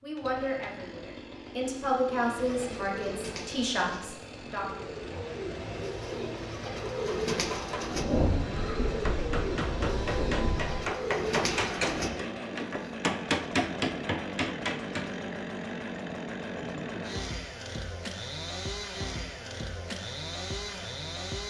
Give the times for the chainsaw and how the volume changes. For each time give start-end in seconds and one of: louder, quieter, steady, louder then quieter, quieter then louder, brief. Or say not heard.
0.0-21.4 louder.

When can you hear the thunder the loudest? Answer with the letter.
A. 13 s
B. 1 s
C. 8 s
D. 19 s
C.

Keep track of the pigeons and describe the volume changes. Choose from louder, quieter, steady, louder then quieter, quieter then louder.
louder.